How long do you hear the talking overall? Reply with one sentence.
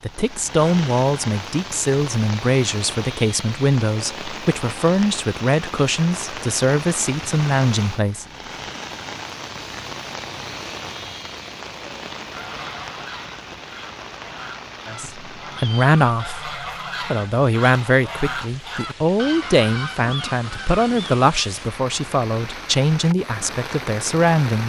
The talking can be heard for 18 seconds in total.